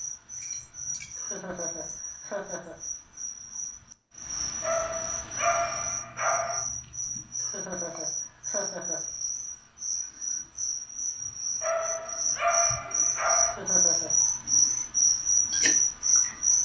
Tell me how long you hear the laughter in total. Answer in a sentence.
You can hear the laughter for 4 seconds altogether.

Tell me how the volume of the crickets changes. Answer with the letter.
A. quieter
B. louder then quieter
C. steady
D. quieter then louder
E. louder
E.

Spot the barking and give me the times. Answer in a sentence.
The barking can be heard from 4.6 to 6.6 s and from 11.6 to 13.6 s.